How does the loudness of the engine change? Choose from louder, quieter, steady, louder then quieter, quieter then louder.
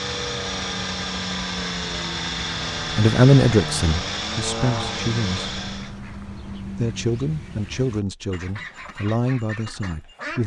steady.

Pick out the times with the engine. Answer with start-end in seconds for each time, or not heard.
0.0-6.0.